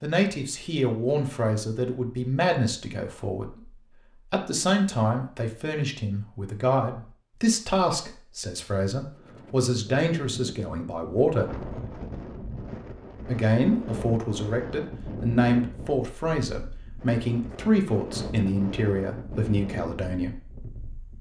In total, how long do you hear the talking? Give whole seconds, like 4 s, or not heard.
19 s.